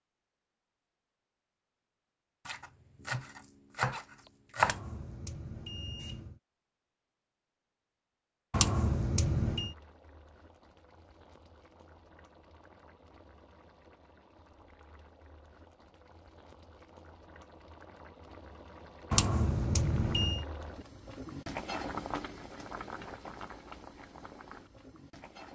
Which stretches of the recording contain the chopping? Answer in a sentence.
The chopping can be heard from 2.5 to 4.8 s.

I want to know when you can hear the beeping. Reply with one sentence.
You can hear the beeping from 4.6 to 6.4 s, from 8.5 to 9.8 s and from 19.1 to 20.4 s.